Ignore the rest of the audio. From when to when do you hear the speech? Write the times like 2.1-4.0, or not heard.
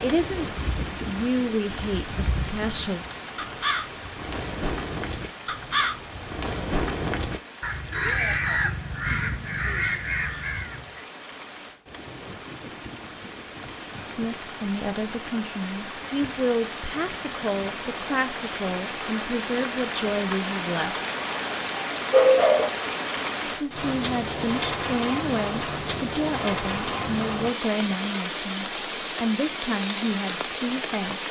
0.0-3.0, 14.1-20.9, 23.4-31.2.